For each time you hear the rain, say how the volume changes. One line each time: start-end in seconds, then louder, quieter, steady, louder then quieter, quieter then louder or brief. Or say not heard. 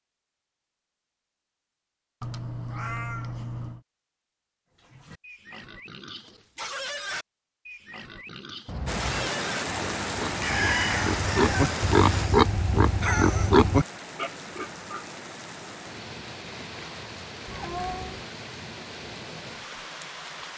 8.8-20.5 quieter.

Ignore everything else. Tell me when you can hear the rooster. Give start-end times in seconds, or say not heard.
10.4-12.4.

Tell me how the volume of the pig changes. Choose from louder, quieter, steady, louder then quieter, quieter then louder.
louder.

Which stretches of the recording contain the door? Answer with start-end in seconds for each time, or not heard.
not heard.